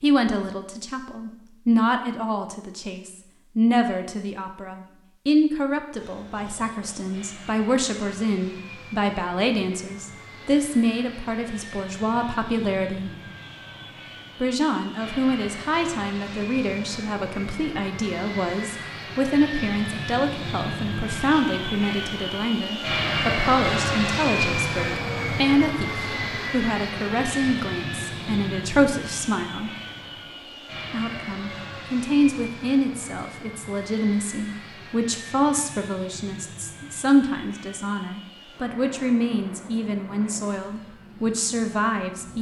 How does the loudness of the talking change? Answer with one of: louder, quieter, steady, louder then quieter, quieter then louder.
steady.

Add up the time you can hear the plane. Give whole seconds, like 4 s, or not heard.
36 s.